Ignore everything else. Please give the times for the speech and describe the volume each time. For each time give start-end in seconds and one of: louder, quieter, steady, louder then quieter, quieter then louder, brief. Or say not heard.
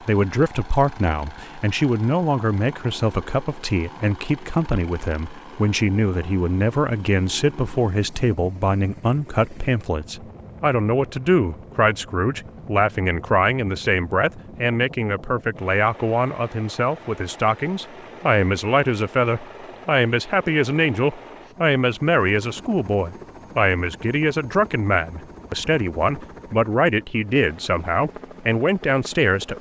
0.0-29.5 steady.